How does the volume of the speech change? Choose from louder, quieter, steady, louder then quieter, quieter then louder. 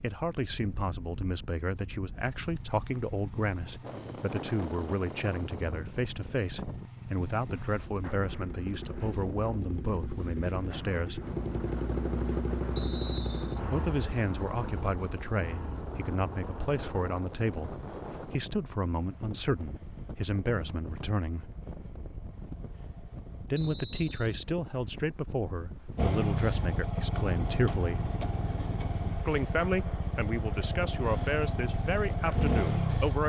steady.